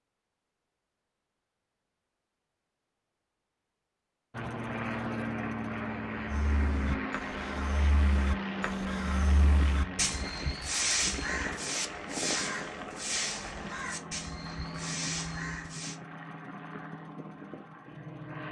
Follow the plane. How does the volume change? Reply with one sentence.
The volume of the plane goes down.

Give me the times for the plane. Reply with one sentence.
You can hear the plane from 4.3 to 18.4 s.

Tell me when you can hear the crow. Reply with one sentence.
The crow can be heard from 6.2 to 15.9 s.